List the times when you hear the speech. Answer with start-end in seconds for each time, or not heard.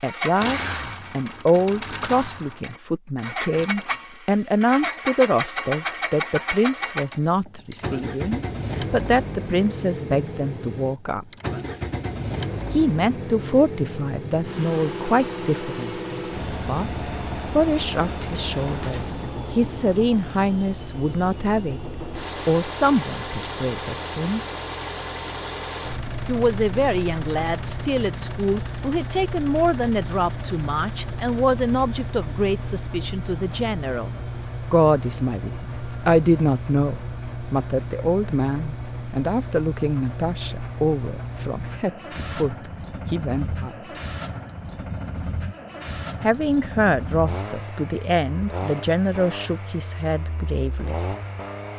0.0-11.2, 12.7-24.4, 26.2-43.8, 46.2-51.1.